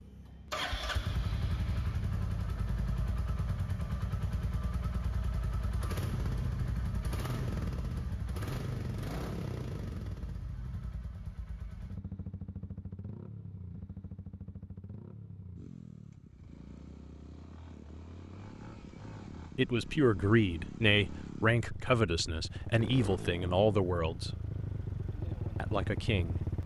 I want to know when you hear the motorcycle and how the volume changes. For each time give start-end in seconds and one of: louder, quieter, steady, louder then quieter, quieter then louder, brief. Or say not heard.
0.0-26.6 quieter then louder.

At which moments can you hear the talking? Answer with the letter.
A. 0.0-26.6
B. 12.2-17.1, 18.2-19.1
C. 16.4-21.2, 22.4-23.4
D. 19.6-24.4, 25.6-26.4
D.